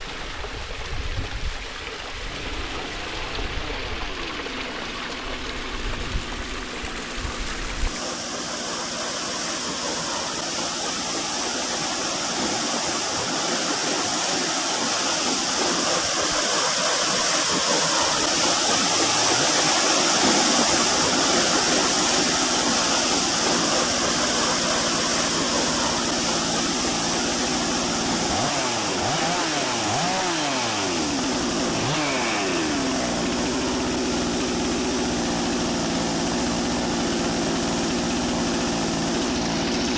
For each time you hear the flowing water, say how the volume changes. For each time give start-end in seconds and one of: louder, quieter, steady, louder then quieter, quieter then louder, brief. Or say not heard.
0.0-39.9 louder then quieter.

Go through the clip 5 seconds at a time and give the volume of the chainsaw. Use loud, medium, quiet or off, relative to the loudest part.
quiet, quiet, quiet, medium, medium, loud, loud, loud.